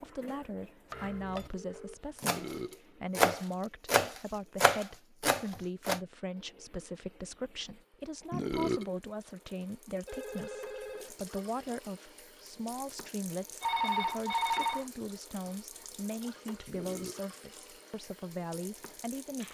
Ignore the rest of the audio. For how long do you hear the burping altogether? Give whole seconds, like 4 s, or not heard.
2 s.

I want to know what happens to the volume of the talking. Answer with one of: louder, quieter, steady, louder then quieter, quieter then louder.
steady.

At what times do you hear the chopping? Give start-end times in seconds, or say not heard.
0.9-2.5, 3.1-6.0.